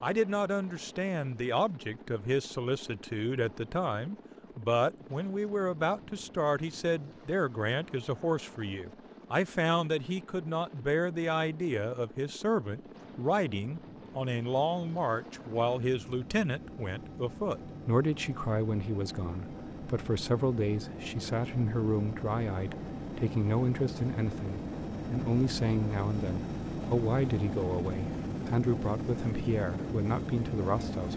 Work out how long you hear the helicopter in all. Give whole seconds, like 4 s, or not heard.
31 s.